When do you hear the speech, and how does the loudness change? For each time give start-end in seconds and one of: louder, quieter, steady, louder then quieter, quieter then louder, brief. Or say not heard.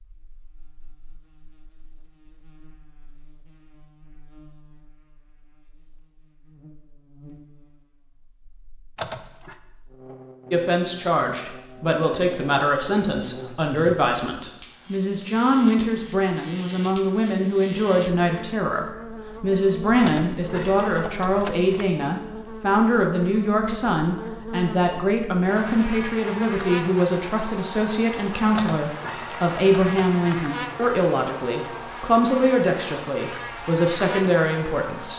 10.5-35.1 steady.